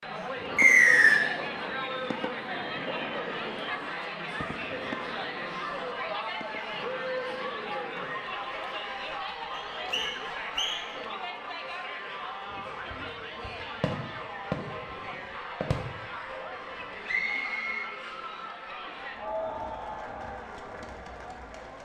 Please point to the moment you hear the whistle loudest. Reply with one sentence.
The loudest moment of the whistle is at 1 second.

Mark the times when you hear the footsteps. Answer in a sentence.
You can't hear the footsteps here.